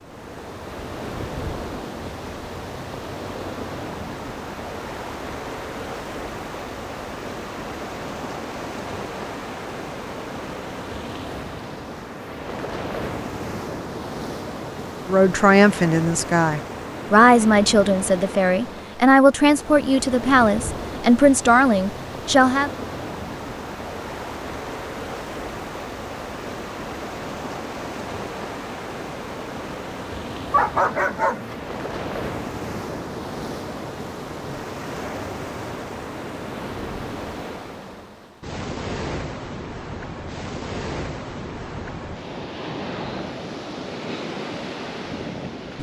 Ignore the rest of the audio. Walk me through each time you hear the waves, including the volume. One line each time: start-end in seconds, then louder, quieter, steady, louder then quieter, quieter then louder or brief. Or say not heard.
0.0-45.7 steady.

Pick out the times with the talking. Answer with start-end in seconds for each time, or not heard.
15.1-22.7.